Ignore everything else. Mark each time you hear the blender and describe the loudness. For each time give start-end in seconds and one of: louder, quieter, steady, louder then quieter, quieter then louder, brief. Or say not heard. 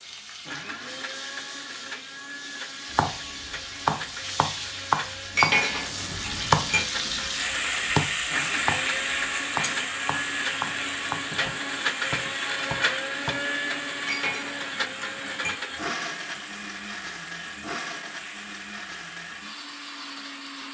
0.0-20.6 louder then quieter.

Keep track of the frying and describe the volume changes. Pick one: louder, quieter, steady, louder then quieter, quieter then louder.
louder then quieter.